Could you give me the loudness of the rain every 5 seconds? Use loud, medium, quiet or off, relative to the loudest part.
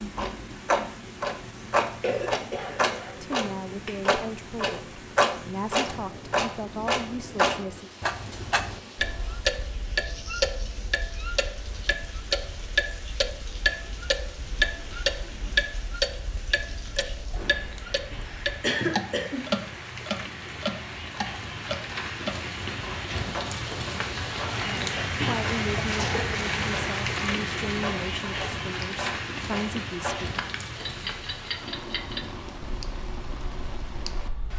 quiet, quiet, quiet, quiet, loud, loud, medium.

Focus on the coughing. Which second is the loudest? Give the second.
19 s.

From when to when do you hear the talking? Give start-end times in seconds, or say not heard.
3.1-7.9, 25.1-30.4.